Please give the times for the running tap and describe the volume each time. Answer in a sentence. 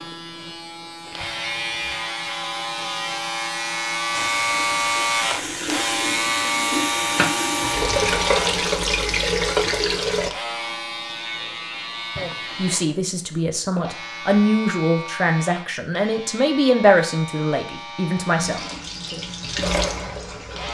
The running tap can be heard from 4.1 to 10.3 s, getting louder; and briefly from 18.4 to 20.7 s.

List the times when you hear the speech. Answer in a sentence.
You can hear the speech from 12.2 to 19.2 s.